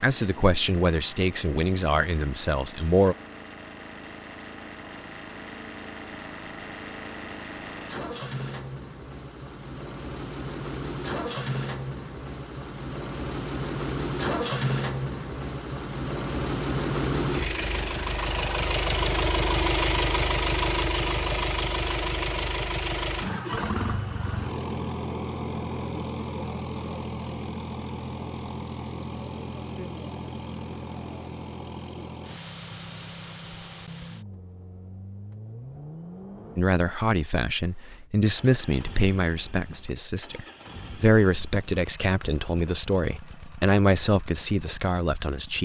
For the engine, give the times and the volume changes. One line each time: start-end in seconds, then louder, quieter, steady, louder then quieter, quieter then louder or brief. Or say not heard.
0.0-45.5 louder then quieter.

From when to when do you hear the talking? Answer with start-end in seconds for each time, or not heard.
0.0-3.1, 36.5-45.5.